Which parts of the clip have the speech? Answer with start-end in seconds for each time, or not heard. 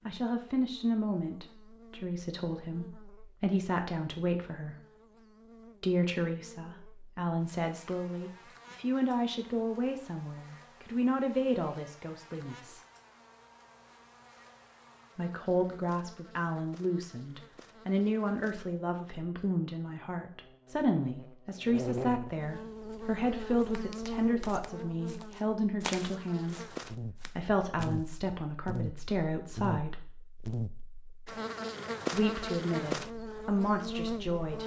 0.1-4.8, 5.8-12.8, 15.2-30.0, 32.1-34.6.